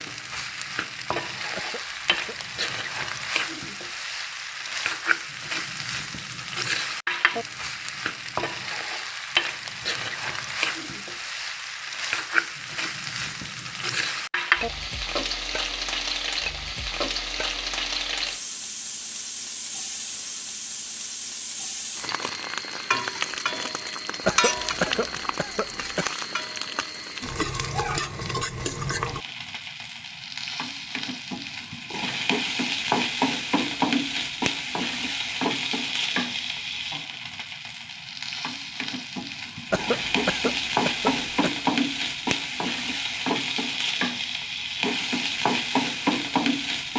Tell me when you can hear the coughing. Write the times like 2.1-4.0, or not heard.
1.6-2.5, 24.2-26.1, 39.7-41.5.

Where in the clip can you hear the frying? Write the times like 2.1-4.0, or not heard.
0.0-46.9.